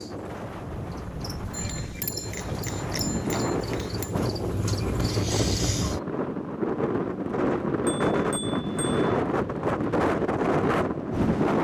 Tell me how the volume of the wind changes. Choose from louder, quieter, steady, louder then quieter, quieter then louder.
louder.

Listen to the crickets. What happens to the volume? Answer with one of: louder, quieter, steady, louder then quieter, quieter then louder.
louder.